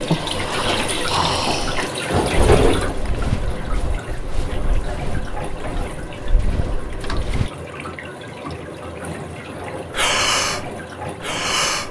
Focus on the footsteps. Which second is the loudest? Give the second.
3 s.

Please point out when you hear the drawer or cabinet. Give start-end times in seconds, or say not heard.
2.0-3.0, 6.4-7.2.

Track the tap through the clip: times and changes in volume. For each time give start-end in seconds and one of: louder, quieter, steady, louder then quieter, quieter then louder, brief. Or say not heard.
0.0-11.8 quieter.